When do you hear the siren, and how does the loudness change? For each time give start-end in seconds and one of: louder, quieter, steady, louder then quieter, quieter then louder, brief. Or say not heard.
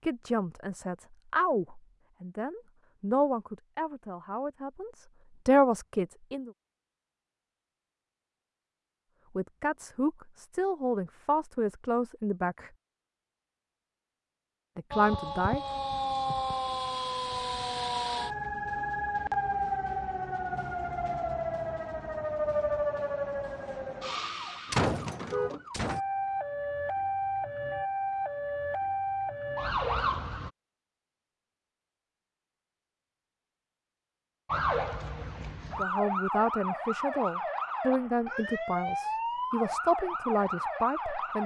14.9-30.5 steady
34.5-41.4 steady.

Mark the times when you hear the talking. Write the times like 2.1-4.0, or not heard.
0.0-6.5, 9.3-12.7, 14.8-15.6, 35.8-41.4.